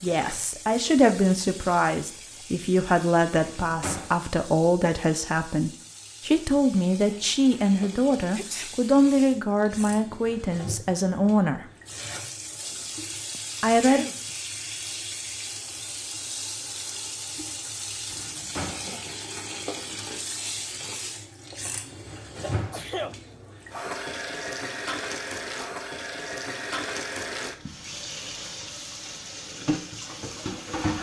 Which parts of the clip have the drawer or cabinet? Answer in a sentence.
You can hear the drawer or cabinet from 3.4 to 4.2 s, from 18.1 to 18.9 s and from 22.1 to 22.9 s.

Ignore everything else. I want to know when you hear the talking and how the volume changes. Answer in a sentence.
You can hear the talking from 0.0 to 11.7 s, at a steady volume; and briefly from 13.6 to 14.1 s.